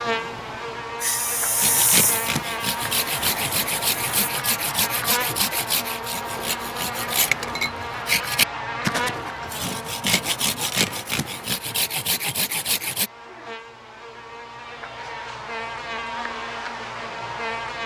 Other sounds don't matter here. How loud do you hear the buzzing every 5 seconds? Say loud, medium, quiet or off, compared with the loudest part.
loud, loud, medium, loud.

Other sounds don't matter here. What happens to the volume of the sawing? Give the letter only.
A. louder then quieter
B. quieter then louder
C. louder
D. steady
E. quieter
D.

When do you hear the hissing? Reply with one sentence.
The hissing can be heard from 0.0 to 4.3 s.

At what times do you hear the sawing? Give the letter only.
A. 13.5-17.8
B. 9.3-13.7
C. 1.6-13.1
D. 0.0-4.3
C.